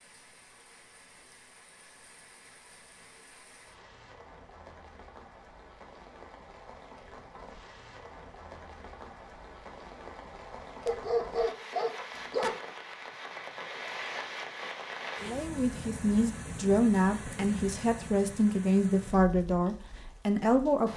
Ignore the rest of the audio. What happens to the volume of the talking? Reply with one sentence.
The volume of the talking stays about the same.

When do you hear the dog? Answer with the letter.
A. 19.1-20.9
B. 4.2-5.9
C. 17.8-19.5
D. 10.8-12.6
D.